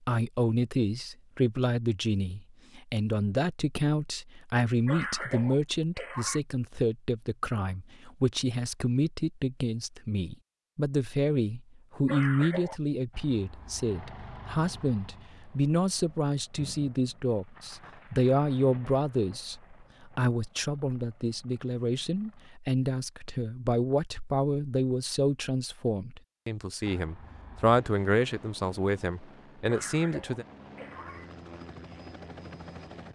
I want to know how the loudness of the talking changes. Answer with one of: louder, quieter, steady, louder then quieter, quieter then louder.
steady.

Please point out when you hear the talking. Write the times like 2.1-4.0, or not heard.
0.1-30.4.